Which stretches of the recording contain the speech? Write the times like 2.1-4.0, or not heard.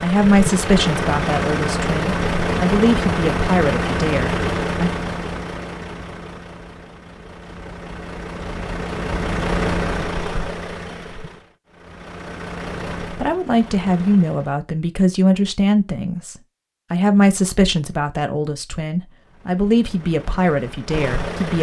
0.0-4.9, 13.2-21.5.